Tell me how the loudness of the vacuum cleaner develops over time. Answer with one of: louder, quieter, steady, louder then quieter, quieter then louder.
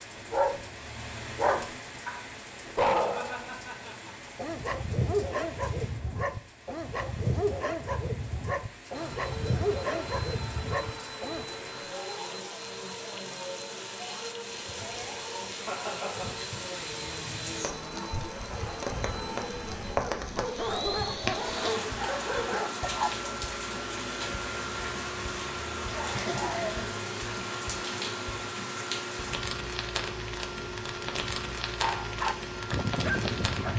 steady.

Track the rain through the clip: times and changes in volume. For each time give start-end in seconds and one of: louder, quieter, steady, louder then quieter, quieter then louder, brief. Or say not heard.
0.0-33.7 louder.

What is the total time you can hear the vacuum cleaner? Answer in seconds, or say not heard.
25 s.